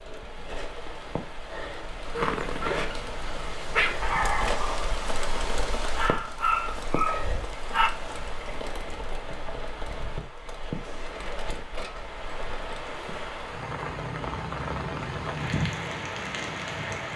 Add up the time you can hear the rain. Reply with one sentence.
You can hear the rain for 17 seconds altogether.